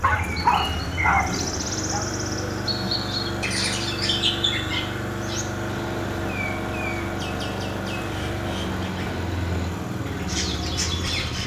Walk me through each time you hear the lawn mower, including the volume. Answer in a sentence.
The lawn mower can be heard from 0.0 to 11.4 s, at a steady volume.